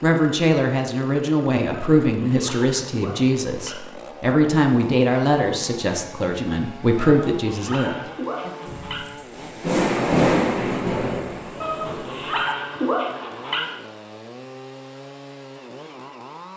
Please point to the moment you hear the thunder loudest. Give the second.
10 s.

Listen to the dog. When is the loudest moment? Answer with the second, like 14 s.
13 s.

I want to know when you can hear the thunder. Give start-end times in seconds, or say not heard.
8.7-12.5.